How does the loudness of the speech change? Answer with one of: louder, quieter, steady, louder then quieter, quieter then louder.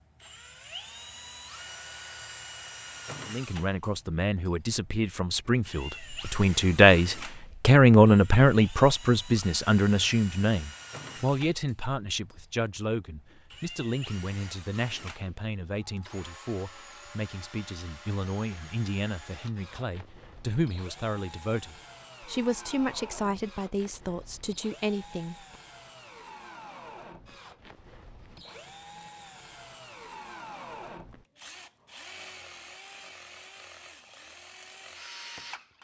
quieter.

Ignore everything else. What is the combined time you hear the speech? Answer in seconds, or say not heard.
22 s.